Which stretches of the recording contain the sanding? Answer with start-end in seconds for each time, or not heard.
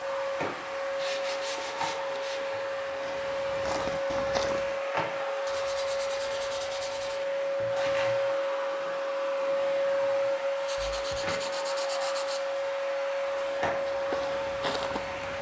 0.9-2.5, 5.5-7.2, 10.7-12.4.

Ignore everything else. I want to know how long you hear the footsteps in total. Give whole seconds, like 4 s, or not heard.
7 s.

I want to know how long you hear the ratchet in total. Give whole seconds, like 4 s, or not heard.
not heard.